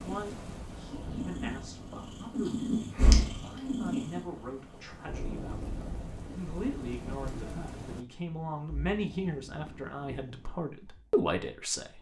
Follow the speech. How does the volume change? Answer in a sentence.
The volume of the speech goes up.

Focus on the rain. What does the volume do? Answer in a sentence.
The loudness of the rain goes down, then up.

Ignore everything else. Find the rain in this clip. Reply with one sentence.
The rain can be heard from 0.0 to 8.1 s.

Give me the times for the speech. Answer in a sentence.
You can hear the speech from 0.0 to 11.9 s.